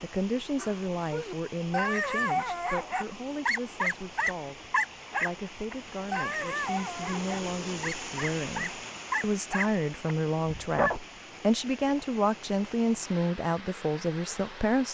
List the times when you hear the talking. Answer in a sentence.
The talking can be heard from 0.0 to 14.8 s.